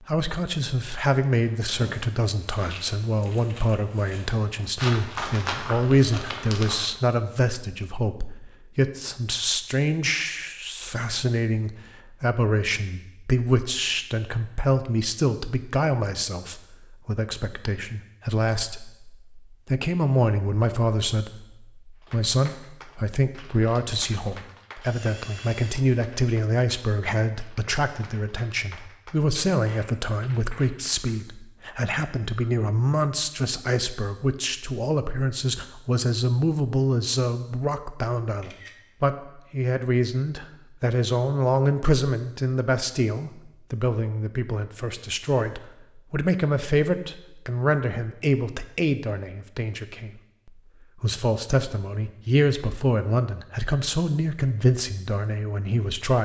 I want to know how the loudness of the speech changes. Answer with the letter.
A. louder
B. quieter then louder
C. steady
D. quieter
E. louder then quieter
C.